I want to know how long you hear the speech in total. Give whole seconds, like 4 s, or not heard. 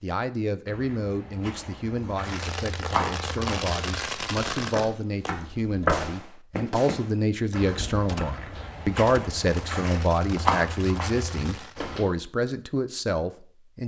14 s.